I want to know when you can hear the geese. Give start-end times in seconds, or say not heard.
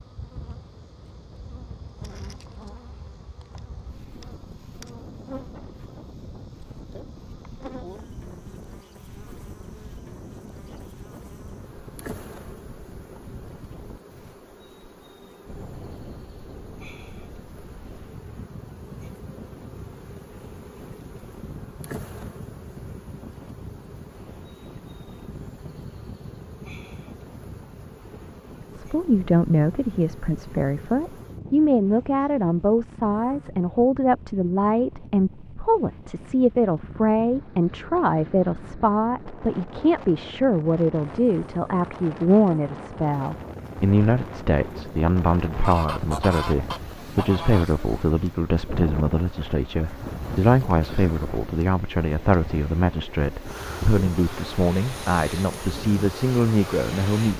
45.6-48.1.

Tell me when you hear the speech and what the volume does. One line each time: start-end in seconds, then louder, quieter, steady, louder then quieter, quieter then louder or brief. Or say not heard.
28.7-57.3 steady.